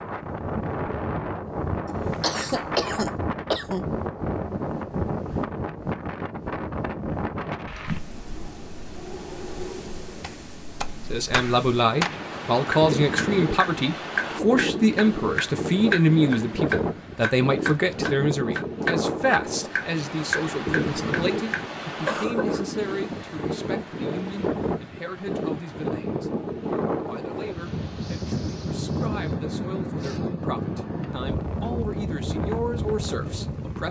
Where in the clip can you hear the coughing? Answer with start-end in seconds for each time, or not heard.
1.9-3.9, 22.1-22.6.